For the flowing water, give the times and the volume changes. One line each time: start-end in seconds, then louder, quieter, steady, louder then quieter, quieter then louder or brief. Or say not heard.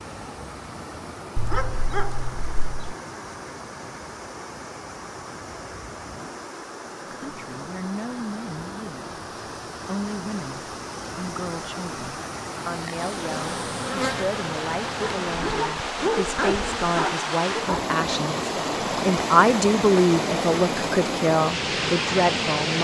0.0-22.8 louder.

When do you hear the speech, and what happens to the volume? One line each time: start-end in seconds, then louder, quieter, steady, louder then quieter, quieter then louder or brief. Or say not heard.
7.1-9.1 brief
9.8-22.8 louder.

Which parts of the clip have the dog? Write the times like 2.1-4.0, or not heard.
1.4-3.0, 14.9-17.9.